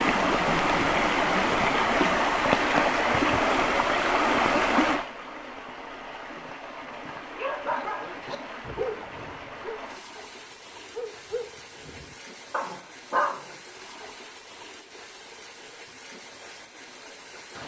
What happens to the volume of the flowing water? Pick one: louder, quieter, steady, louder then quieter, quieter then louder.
quieter.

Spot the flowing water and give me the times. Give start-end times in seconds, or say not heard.
0.0-17.6.